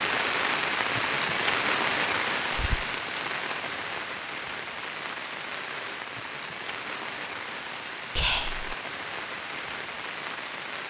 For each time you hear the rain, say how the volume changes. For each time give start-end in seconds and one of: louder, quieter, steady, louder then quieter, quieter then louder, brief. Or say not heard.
0.0-10.8 quieter.